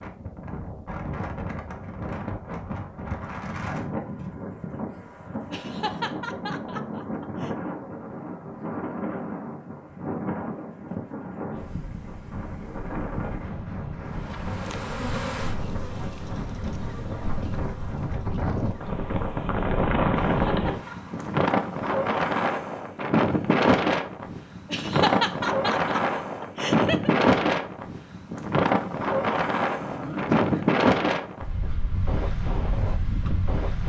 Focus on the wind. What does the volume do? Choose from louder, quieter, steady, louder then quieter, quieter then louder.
louder.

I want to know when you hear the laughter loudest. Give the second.
25 s.